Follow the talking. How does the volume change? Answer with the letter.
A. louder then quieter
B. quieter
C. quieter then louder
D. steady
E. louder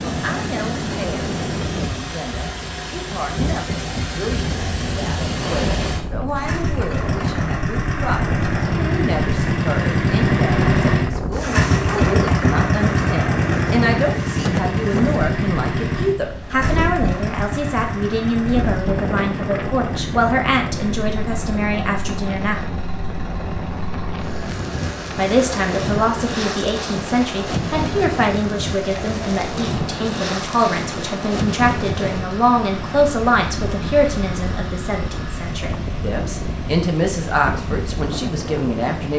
E.